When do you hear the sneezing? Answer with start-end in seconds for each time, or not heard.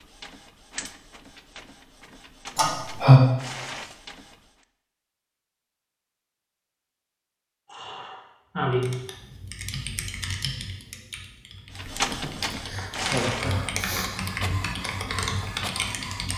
not heard.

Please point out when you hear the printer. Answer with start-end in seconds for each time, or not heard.
0.0-4.7, 11.8-16.3.